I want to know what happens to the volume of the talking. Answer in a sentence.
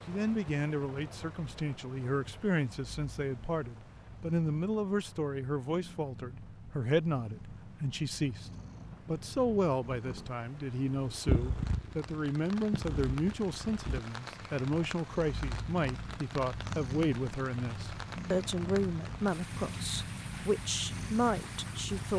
The volume of the talking stays about the same.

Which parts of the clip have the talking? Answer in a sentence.
You can hear the talking from 0.1 to 22.1 s.